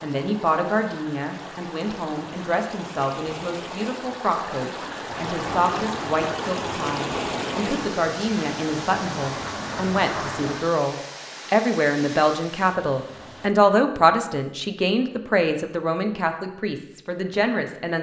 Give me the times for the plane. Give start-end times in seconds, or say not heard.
5.2-10.7.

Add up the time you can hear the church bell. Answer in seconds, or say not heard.
not heard.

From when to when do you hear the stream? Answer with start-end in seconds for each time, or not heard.
0.0-13.6.